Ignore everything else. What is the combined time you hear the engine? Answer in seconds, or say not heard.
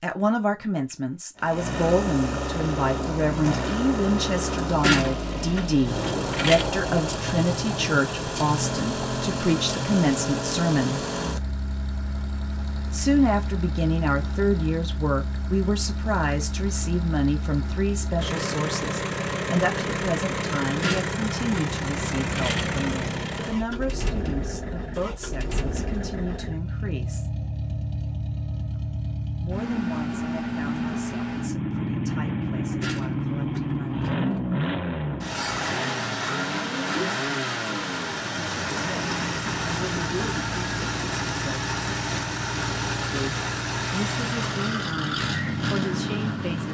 45 s.